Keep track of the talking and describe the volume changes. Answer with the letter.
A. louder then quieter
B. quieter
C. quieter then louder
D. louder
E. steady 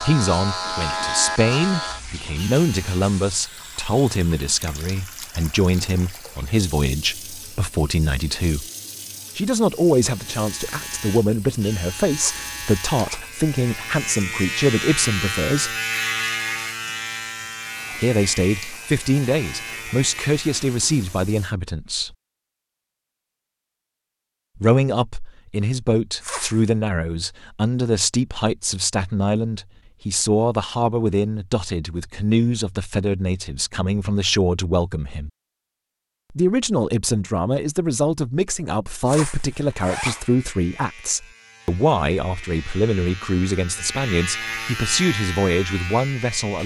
E.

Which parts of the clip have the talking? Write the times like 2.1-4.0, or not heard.
0.0-8.7, 9.3-15.8, 18.0-22.1, 24.6-35.3, 36.3-46.6.